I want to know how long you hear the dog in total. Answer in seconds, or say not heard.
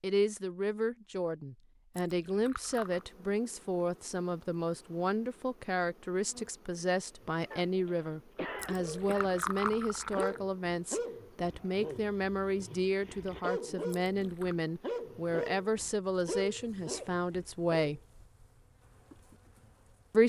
9 s.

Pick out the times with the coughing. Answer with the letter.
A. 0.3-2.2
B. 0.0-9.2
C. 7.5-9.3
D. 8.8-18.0
C.